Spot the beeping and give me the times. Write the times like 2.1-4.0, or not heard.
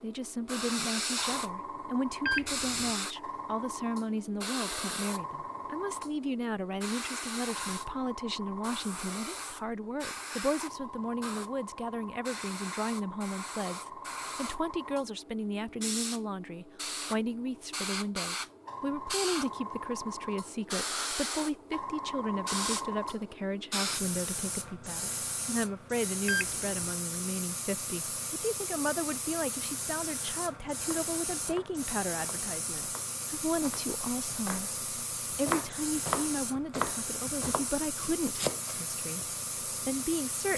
2.2-2.9, 26.2-26.9.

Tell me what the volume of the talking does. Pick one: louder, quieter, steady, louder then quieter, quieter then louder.
steady.